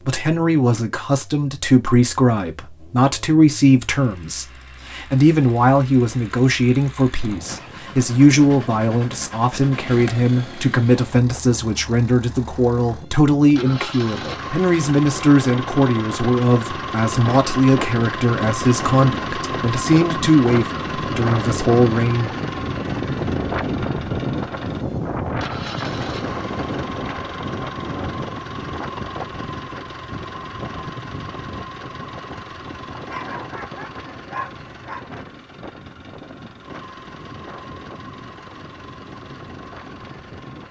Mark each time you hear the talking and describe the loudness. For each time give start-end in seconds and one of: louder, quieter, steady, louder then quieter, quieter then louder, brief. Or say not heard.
0.1-22.4 steady.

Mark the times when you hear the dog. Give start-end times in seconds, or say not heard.
33.0-35.0.